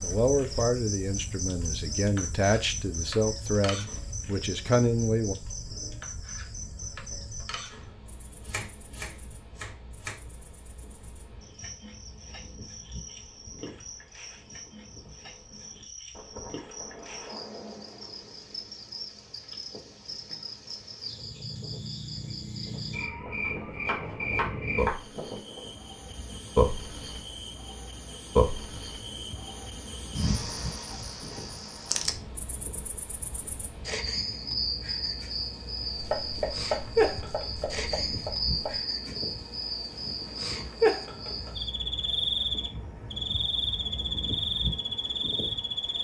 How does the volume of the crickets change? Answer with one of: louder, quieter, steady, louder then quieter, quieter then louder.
quieter then louder.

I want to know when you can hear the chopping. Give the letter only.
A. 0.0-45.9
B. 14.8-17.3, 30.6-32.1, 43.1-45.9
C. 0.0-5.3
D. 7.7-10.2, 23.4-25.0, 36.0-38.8
D.